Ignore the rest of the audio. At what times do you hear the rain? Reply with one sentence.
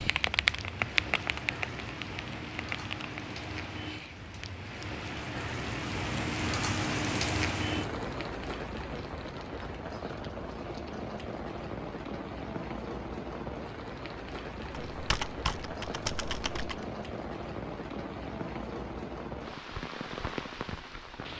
You can hear the rain from 0.0 to 21.3 s.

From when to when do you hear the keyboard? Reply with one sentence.
You can hear the keyboard from 0.0 to 3.2 s and from 14.9 to 16.9 s.